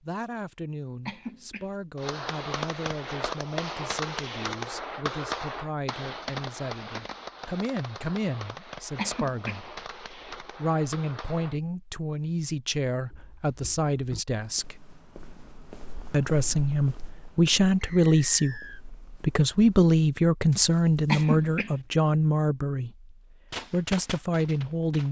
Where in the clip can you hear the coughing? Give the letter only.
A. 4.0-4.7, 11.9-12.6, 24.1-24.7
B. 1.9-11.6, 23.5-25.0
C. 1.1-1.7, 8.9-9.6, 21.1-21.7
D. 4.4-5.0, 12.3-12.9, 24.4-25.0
C.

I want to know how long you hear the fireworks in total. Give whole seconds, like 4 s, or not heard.
11 s.